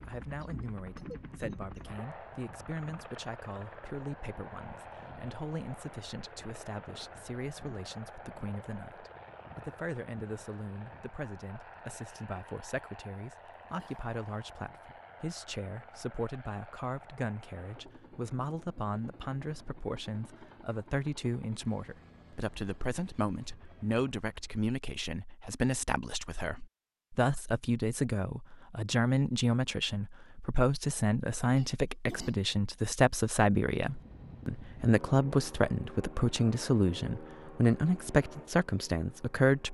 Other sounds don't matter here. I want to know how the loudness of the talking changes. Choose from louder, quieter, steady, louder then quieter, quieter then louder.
louder.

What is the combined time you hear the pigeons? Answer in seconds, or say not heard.
not heard.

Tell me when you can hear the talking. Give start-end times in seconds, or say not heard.
0.0-39.6.